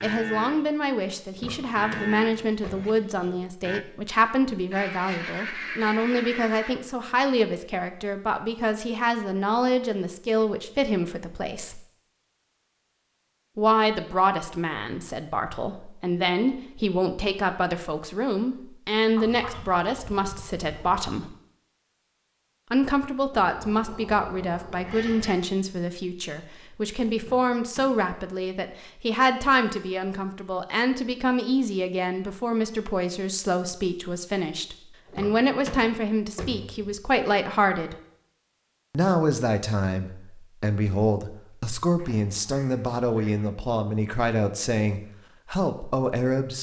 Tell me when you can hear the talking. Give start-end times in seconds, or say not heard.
0.0-11.8, 13.6-21.4, 22.7-38.0, 38.9-46.5.